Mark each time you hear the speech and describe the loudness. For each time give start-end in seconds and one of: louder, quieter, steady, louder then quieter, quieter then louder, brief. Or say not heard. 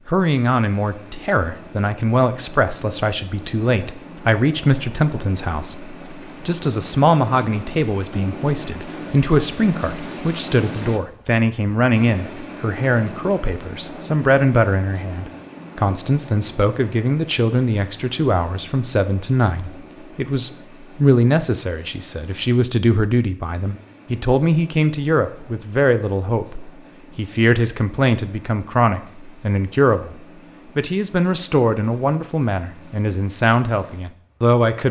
0.1-34.8 steady.